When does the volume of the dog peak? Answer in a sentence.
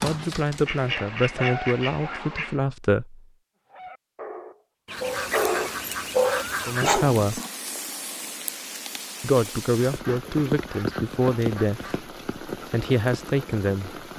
The loudest moment of the dog is at 6 seconds.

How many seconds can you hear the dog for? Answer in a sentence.
The dog can be heard for 6 seconds in total.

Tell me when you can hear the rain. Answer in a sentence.
The rain can be heard from 4.9 to 14.1 s.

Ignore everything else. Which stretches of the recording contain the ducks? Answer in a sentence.
You can hear the ducks from 0.7 to 2.6 s, from 4.8 to 7.0 s and from 9.8 to 12.1 s.